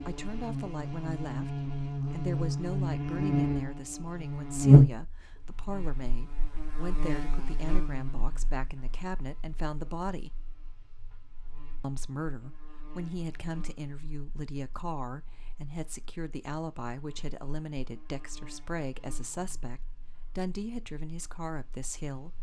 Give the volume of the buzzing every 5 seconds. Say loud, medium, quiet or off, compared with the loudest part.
loud, quiet, quiet, quiet, quiet.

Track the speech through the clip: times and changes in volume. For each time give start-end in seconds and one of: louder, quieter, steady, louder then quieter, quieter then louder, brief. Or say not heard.
0.1-10.4 steady
11.8-22.3 steady.